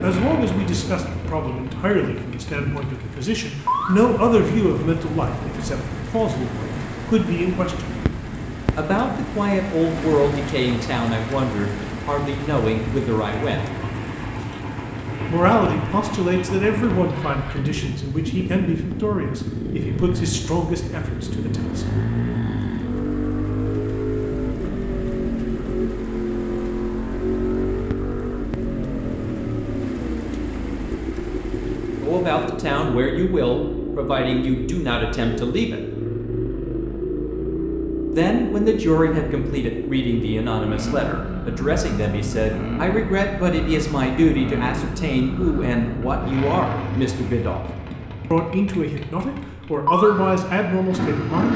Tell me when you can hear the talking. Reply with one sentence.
You can hear the talking from 0.0 to 7.9 s, from 8.8 to 13.7 s, from 15.2 to 21.9 s, from 32.0 to 35.8 s, from 38.1 to 47.6 s and from 48.3 to 51.5 s.